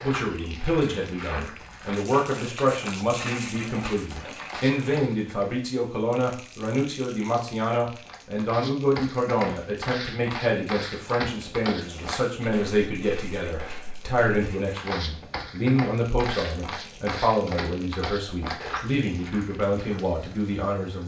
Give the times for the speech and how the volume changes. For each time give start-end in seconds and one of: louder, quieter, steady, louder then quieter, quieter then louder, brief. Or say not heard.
0.0-21.0 steady.